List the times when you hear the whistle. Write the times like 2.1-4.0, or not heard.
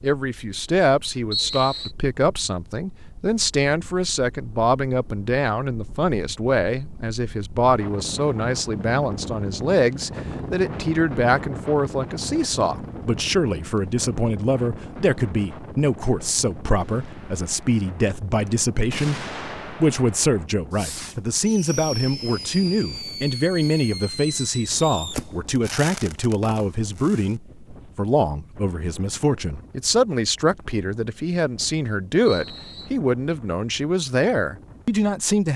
1.3-1.9, 32.2-32.9.